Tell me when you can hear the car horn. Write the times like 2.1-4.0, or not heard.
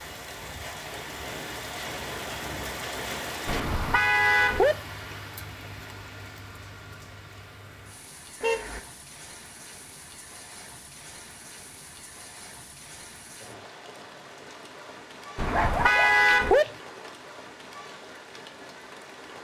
3.5-4.8, 8.4-8.8, 15.3-16.6.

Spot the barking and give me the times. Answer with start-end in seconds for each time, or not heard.
15.3-16.8.